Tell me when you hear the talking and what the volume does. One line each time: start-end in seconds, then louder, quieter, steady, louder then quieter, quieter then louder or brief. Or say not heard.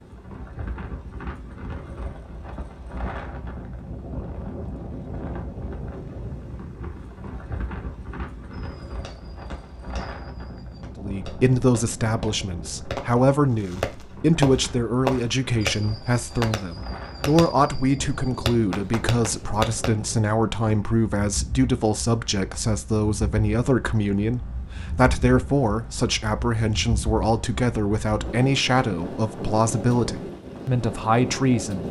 10.9-31.8 steady.